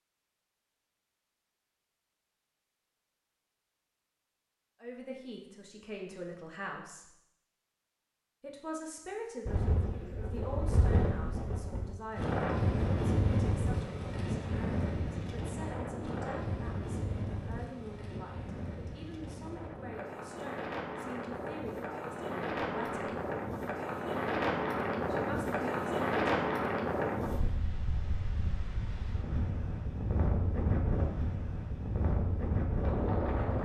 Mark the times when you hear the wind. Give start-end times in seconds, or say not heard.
9.4-33.6.